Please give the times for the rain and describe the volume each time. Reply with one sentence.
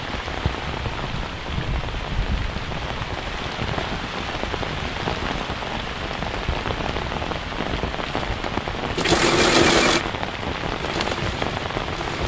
You can hear the rain from 0.0 to 12.2 s, at a steady volume.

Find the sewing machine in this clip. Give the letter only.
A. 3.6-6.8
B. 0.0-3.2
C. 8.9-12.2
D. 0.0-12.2
C.